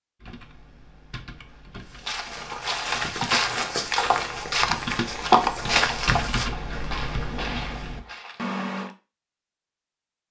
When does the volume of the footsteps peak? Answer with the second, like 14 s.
5 s.